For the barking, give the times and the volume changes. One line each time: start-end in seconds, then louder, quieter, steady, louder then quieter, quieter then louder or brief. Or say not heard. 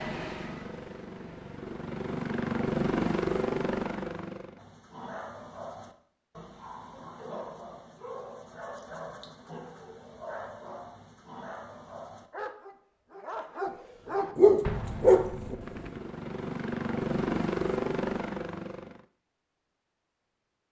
4.5-15.6 louder.